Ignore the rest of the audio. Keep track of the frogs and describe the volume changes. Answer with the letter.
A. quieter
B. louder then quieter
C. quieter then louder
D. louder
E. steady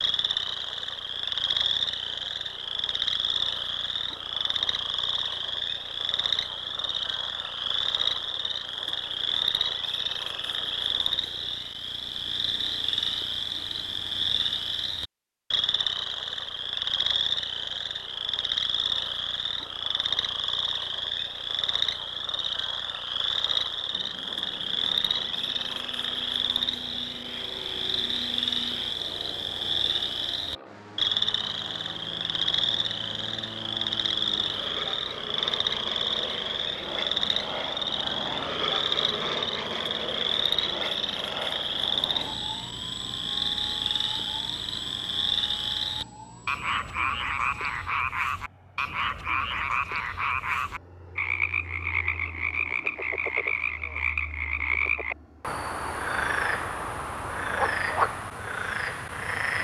E.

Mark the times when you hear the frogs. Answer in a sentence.
The frogs can be heard from 0.0 to 59.5 s.